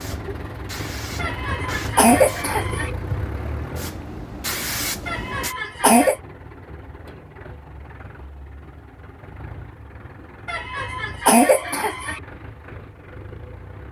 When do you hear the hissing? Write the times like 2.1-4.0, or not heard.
0.0-5.5.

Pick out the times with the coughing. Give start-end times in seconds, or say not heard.
1.1-2.9, 5.0-6.2, 10.4-12.2.